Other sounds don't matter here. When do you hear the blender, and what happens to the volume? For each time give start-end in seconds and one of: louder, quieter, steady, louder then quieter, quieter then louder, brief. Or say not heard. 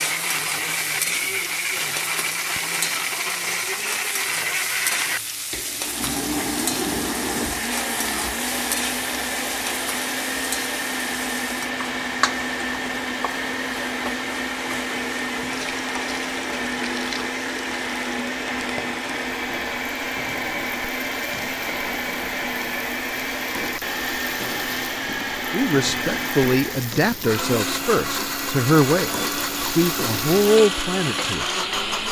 0.0-32.0 steady.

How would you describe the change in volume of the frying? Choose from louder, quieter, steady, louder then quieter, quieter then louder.
quieter then louder.